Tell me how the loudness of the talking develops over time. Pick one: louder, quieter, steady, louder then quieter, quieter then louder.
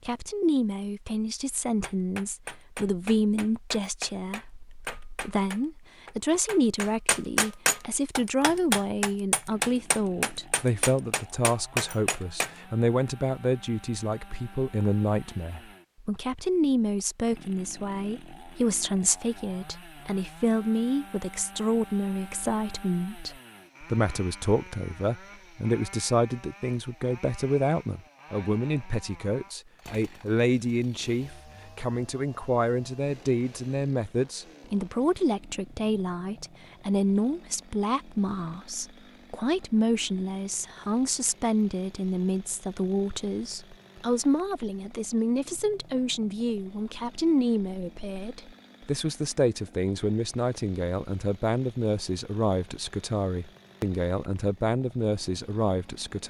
steady.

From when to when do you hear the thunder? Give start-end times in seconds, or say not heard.
not heard.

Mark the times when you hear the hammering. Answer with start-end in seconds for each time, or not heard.
1.8-12.5.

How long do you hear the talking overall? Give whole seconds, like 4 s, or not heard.
56 s.